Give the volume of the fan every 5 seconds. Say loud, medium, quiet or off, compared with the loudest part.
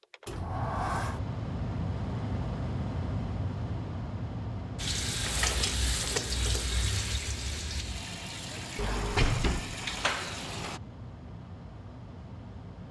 loud, medium, medium.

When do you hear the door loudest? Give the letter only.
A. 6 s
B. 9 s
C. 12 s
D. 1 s
B.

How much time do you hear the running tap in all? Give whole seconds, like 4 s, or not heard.
6 s.